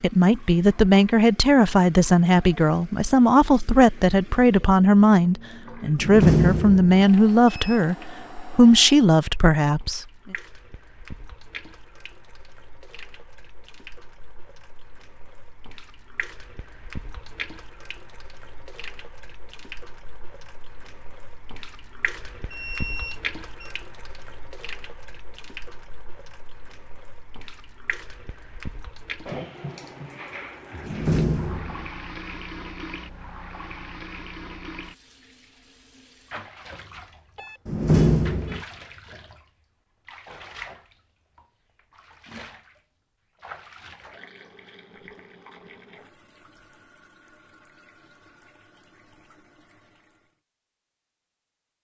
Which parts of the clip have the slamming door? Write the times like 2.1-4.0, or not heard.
6.0-7.0, 30.8-31.9, 37.6-38.6.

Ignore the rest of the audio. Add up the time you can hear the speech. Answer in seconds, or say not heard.
10 s.